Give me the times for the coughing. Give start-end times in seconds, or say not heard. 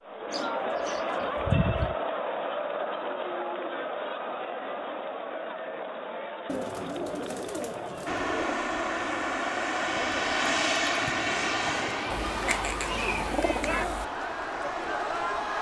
not heard.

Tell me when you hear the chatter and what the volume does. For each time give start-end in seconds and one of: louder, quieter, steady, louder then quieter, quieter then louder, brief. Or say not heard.
0.0-15.5 quieter then louder.